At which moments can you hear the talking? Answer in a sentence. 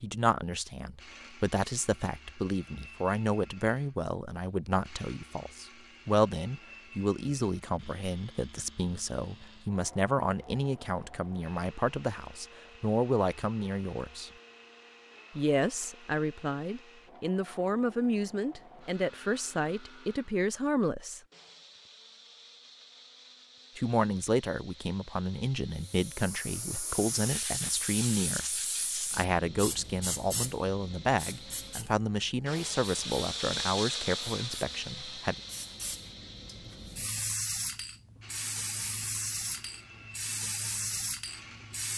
The talking can be heard from 0.0 to 14.3 s, from 15.3 to 21.2 s and from 23.8 to 35.4 s.